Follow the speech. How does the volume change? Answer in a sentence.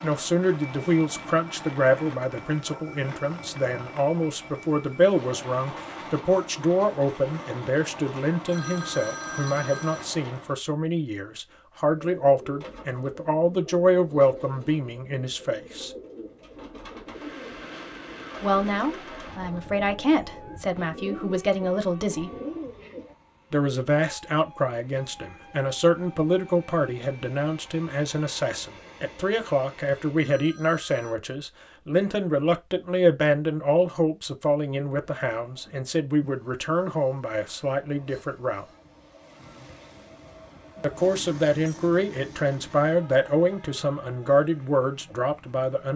The volume of the speech stays about the same.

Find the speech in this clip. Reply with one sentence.
You can hear the speech from 0.0 to 15.9 s, from 18.4 to 22.3 s, from 23.5 to 38.6 s and from 40.8 to 45.9 s.